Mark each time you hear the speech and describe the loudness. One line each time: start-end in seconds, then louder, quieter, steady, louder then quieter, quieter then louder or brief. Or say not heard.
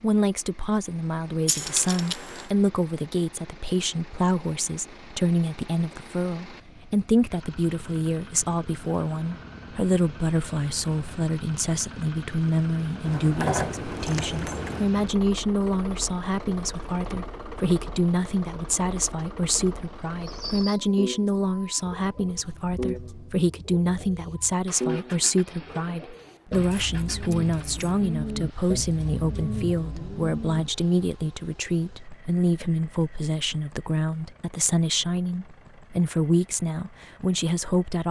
0.0-38.0 steady.